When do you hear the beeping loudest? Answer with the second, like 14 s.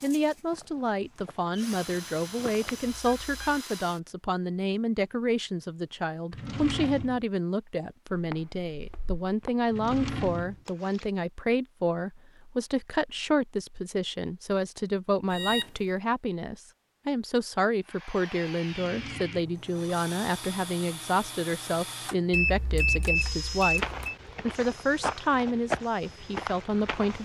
23 s.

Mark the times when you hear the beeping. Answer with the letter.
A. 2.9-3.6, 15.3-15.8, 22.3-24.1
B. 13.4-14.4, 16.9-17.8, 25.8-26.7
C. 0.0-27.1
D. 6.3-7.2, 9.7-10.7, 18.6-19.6
A.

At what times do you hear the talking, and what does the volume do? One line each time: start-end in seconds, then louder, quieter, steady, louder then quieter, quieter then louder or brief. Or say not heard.
0.0-27.1 steady.